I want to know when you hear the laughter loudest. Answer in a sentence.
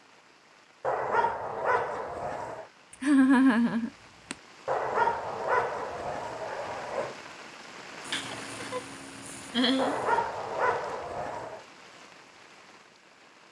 The volume of the laughter peaks at 3 seconds.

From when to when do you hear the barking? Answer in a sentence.
You can hear the barking from 0.8 to 2.6 s, from 4.7 to 7.2 s and from 9.8 to 11.7 s.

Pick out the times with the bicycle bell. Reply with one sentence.
The bicycle bell can't be heard in this clip.